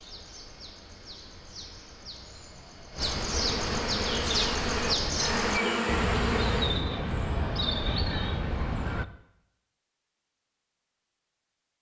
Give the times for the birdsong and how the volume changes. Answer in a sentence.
The birdsong can be heard from 0.0 to 9.1 s, getting louder.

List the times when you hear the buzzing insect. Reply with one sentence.
The buzzing insect can be heard from 3.1 to 6.8 s.